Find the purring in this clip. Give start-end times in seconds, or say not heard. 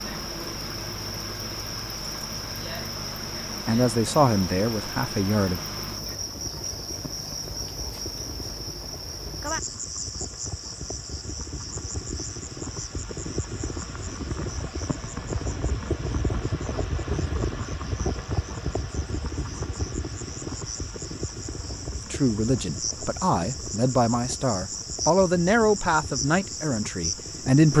not heard.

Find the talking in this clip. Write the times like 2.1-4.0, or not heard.
3.6-5.6, 22.1-27.7.